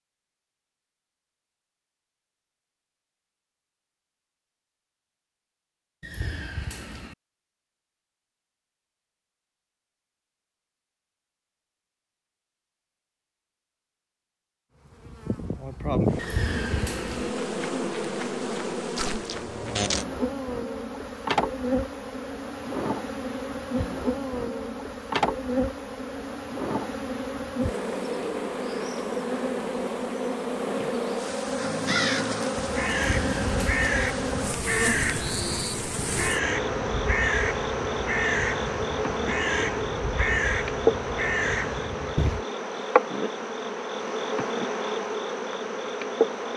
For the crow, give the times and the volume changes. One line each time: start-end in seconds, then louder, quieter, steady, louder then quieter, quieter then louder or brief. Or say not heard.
31.6-42.5 steady.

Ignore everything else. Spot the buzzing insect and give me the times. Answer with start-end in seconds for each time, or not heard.
14.9-46.5.